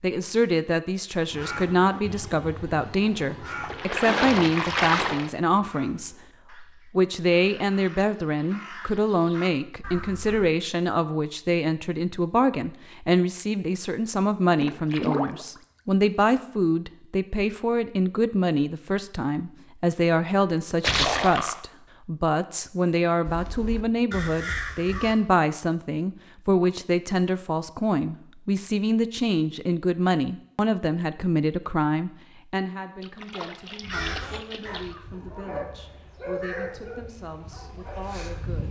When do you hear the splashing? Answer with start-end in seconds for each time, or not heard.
3.6-5.3, 14.6-15.7, 20.8-21.6, 33.0-34.9.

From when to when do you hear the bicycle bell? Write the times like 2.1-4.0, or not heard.
not heard.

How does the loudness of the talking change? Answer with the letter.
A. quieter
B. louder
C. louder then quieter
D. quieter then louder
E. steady
A.